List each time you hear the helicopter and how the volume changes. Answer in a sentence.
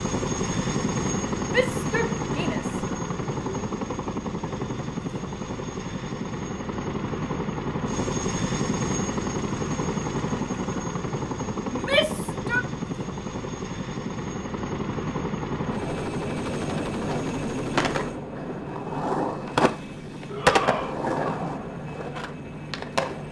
You can hear the helicopter from 0.0 to 23.2 s, getting quieter.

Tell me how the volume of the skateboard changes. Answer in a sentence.
The volume of the skateboard goes up, then down.